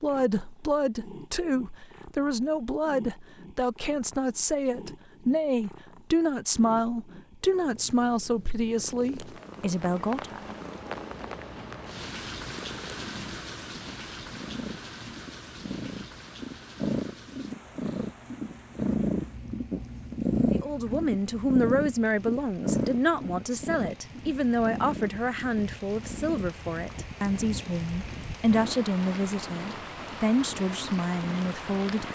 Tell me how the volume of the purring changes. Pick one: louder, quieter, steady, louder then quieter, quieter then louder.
louder then quieter.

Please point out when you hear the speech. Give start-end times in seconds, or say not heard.
0.0-10.4, 20.5-32.1.